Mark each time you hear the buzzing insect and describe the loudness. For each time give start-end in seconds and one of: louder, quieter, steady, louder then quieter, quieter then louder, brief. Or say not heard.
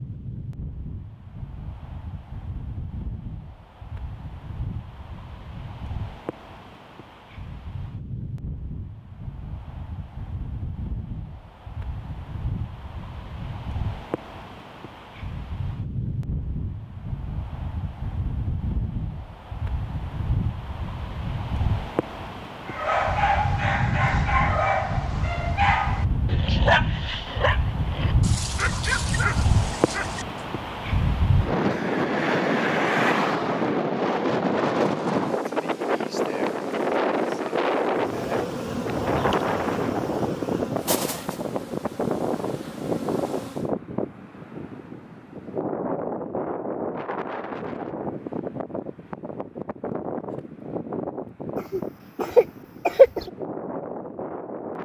37.9-43.8 quieter.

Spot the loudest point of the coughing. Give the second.
53 s.